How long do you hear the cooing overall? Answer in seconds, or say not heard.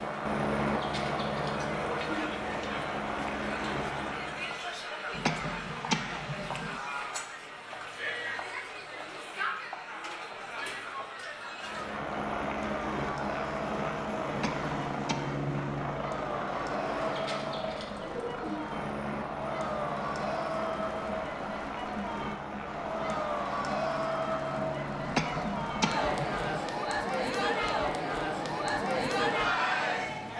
3 s.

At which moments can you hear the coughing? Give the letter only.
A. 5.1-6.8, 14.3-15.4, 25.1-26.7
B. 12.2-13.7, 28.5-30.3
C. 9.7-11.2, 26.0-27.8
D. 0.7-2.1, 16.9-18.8
A.